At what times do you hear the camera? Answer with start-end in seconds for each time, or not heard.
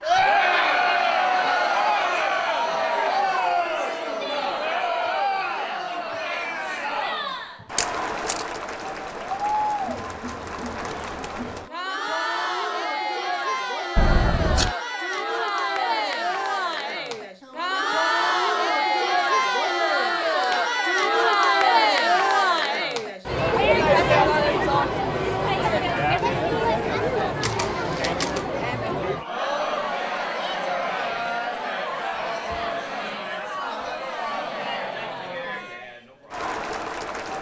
7.8-8.4, 13.9-14.8, 27.4-28.4.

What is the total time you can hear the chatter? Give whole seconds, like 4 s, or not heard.
37 s.